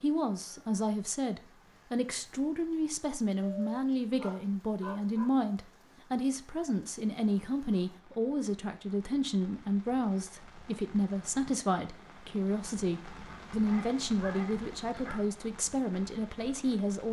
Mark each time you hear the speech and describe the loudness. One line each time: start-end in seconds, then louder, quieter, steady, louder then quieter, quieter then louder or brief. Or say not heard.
0.0-17.0 steady.